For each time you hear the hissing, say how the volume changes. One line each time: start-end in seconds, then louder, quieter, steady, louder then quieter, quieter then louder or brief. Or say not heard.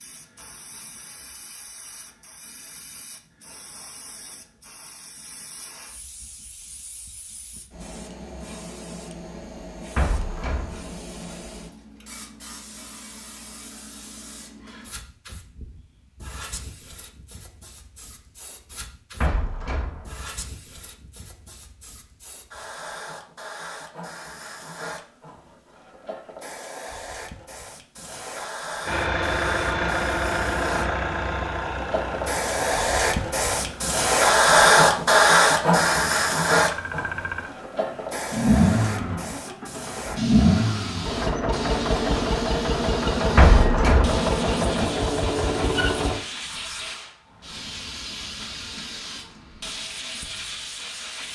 0.0-51.3 louder then quieter.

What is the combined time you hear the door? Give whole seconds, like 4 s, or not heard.
3 s.